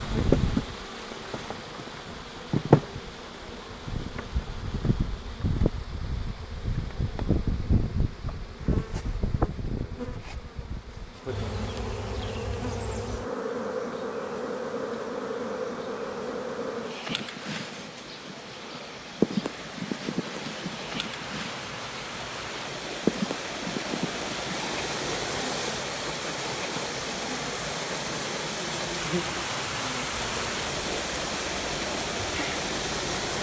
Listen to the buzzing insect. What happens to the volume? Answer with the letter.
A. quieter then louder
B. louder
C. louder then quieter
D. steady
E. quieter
E.